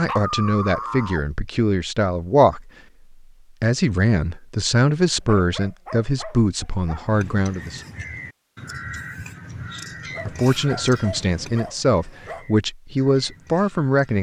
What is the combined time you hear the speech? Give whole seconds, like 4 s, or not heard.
11 s.